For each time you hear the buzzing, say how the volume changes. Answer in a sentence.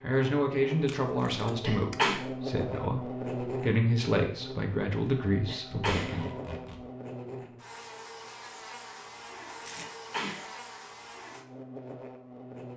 The buzzing can be heard from 0.1 to 12.7 s, getting quieter.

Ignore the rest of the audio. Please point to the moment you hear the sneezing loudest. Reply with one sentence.
The volume of the sneezing peaks at 2 seconds.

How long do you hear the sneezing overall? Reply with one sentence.
You can hear the sneezing for 2 seconds altogether.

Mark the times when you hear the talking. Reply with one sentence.
You can hear the talking from 0.0 to 6.2 s.